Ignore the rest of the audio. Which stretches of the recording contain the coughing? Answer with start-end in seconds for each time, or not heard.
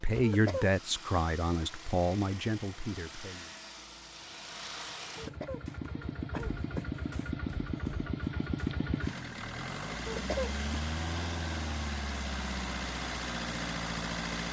0.2-0.7, 5.2-7.0, 10.1-10.6.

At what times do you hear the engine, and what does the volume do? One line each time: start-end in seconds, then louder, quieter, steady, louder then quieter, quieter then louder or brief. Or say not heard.
0.0-14.4 louder.